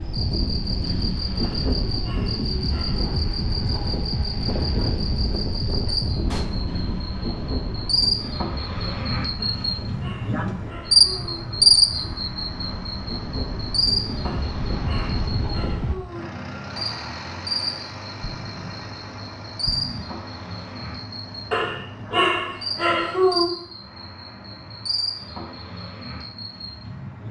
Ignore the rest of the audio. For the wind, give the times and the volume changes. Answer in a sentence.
You can hear the wind from 0.0 to 15.9 s, getting quieter then louder.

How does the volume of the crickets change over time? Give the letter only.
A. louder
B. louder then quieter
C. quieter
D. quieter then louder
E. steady
B.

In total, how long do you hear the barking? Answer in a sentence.
You can hear the barking for 8 seconds altogether.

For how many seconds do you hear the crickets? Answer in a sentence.
The crickets can be heard for 27 seconds in total.